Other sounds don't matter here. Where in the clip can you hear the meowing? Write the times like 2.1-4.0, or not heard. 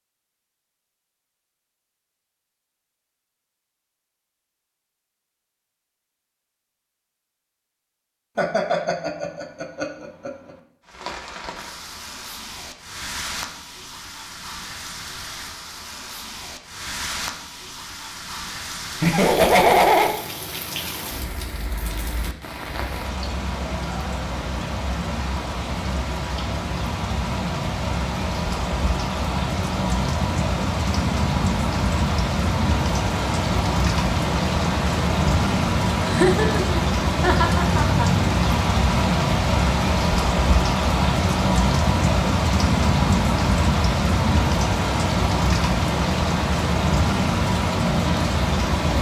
not heard.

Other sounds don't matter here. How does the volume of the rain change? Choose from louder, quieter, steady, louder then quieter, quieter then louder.
louder.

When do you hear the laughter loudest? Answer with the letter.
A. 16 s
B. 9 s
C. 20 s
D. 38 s
C.